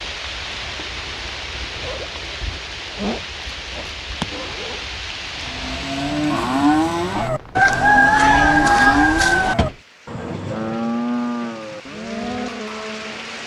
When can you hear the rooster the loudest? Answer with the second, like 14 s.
8 s.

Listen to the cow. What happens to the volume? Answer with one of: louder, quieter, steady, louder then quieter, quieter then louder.
quieter.